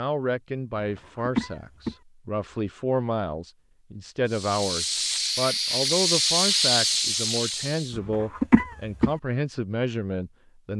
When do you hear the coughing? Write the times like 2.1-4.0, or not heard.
1.1-1.9, 8.0-9.1.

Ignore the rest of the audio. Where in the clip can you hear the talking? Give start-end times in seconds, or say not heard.
0.0-10.7.